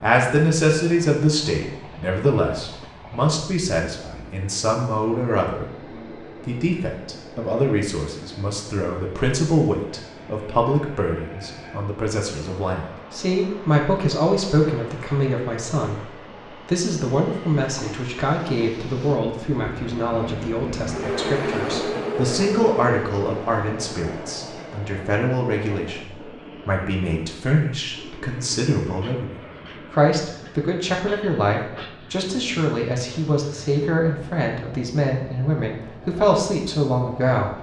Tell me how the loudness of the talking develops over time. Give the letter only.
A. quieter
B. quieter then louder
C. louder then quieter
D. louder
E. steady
E.